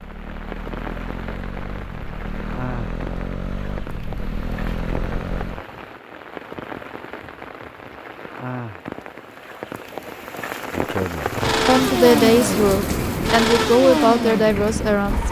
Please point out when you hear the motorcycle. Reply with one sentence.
You can hear the motorcycle from 0.0 to 5.7 s and from 11.2 to 15.2 s.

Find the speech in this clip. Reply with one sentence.
The speech can be heard from 10.8 to 15.2 s.